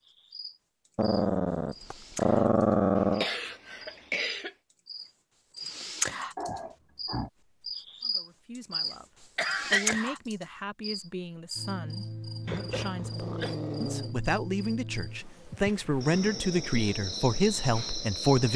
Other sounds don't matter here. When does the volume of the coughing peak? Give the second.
10 s.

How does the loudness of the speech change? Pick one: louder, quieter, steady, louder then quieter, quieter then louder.
louder.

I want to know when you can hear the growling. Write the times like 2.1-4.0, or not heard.
0.9-3.2, 6.3-7.3, 12.4-14.2.